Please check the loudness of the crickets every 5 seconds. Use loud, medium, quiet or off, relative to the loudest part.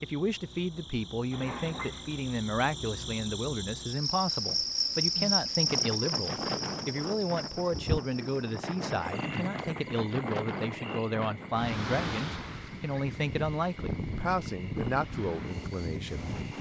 loud, loud, quiet, quiet.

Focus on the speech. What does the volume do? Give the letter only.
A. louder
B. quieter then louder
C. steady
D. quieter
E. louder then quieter
C.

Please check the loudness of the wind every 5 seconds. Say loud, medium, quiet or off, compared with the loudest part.
off, loud, loud, loud.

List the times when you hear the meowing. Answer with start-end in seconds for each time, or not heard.
1.3-2.4.